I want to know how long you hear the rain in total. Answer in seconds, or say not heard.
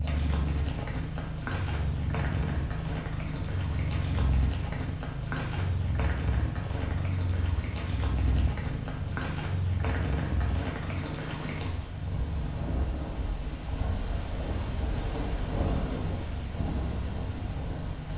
18 s.